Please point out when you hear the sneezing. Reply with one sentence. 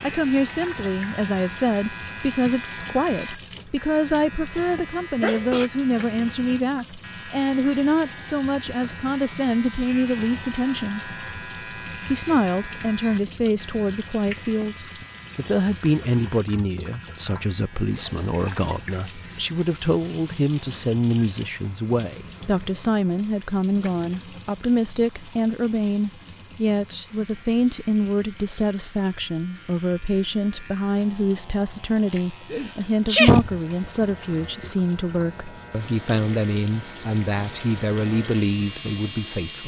You can hear the sneezing from 4.5 to 5.7 s and from 32.5 to 33.6 s.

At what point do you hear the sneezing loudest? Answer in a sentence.
The loudest moment of the sneezing is at 33 seconds.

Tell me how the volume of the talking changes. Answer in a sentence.
The loudness of the talking stays about the same.